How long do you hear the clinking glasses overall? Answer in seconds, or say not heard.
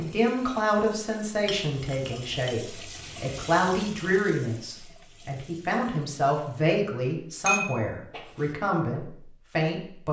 2 s.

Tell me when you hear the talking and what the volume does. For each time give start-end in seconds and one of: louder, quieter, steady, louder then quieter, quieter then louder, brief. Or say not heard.
0.0-10.0 steady.